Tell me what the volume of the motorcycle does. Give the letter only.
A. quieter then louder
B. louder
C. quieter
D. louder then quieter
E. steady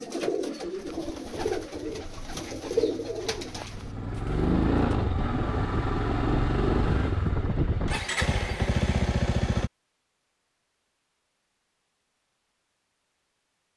B.